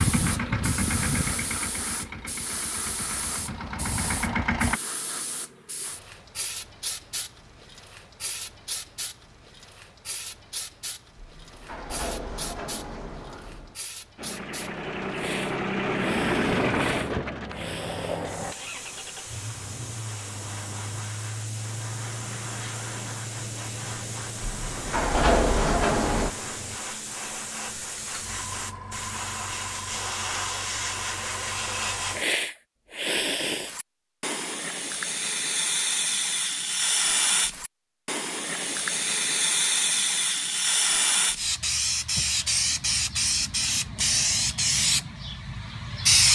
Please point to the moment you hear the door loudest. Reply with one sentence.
The volume of the door peaks at 25 seconds.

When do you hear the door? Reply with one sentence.
The door can be heard from 11.2 to 13.8 s and from 24.4 to 26.3 s.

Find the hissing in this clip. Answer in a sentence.
The hissing can be heard from 0.0 to 46.3 s.